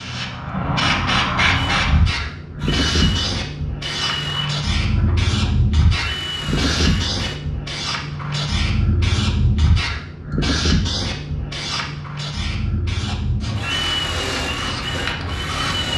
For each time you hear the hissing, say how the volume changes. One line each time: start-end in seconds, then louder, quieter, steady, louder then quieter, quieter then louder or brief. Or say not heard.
0.0-15.9 quieter.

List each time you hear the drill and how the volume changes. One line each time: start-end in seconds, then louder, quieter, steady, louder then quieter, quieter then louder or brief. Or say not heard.
1.5-7.4 quieter then louder
12.9-15.9 brief.